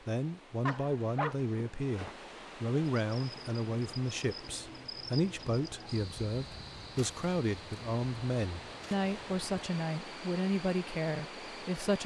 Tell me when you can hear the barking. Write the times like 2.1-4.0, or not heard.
0.7-2.1.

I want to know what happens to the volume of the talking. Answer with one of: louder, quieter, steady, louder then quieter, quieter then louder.
steady.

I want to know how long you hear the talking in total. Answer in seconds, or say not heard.
12 s.